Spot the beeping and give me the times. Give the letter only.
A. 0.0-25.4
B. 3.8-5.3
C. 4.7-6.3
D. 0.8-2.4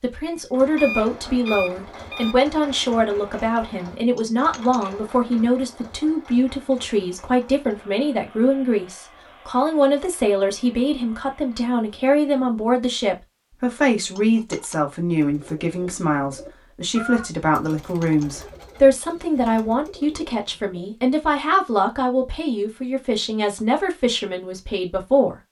D.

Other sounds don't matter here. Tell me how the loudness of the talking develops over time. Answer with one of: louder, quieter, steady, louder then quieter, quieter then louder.
steady.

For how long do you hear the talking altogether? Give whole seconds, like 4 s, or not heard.
25 s.